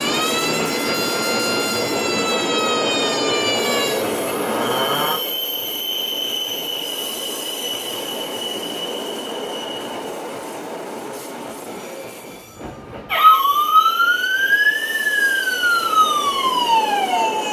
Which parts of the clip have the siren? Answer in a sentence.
You can hear the siren from 0.0 to 5.2 s and from 13.1 to 17.4 s.